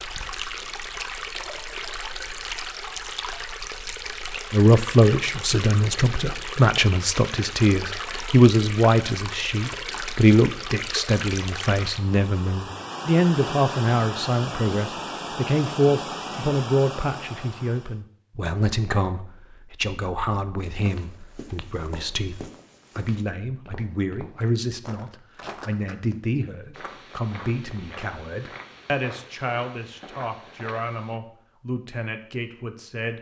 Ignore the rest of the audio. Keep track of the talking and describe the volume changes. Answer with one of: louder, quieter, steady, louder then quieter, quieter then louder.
quieter.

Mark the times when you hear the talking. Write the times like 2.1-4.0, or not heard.
4.5-33.1.